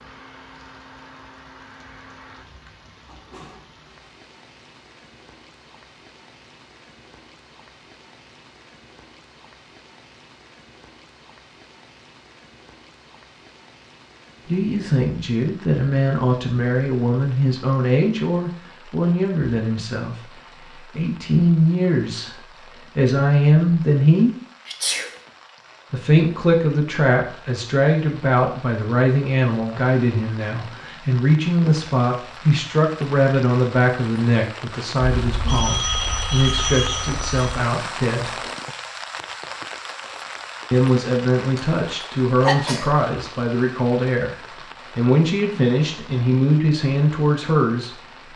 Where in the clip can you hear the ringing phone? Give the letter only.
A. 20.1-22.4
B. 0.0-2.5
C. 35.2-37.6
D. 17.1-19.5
C.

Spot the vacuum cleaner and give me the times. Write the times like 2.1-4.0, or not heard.
0.0-2.5.